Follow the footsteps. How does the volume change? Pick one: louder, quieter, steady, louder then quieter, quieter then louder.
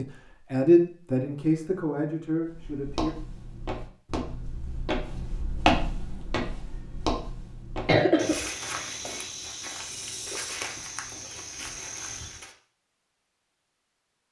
louder then quieter.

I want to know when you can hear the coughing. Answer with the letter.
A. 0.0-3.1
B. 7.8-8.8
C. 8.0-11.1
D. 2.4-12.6
B.